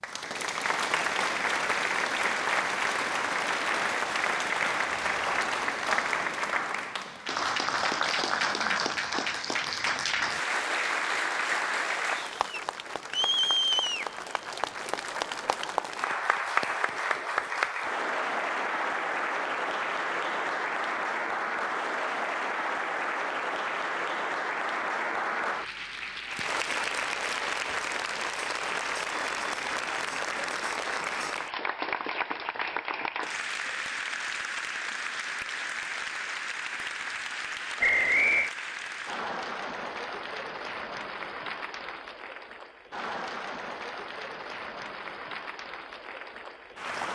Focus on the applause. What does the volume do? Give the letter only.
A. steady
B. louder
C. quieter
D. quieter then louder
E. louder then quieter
C.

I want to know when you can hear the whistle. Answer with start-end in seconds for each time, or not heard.
37.8-38.5.